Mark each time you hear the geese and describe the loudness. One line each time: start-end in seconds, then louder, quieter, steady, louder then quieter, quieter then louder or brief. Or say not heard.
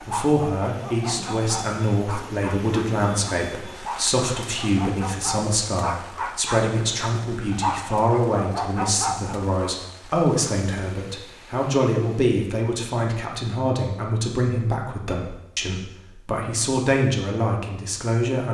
not heard.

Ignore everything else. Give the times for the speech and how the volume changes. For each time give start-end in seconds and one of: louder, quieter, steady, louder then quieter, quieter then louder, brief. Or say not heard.
0.1-18.4 steady.